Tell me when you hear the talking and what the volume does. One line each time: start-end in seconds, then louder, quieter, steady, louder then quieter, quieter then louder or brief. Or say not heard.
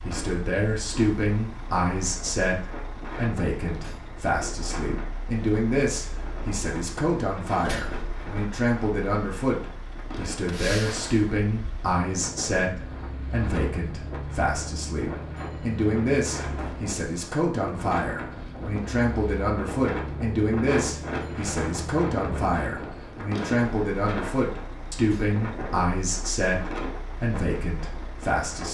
0.0-28.6 steady.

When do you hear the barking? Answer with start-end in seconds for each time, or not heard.
not heard.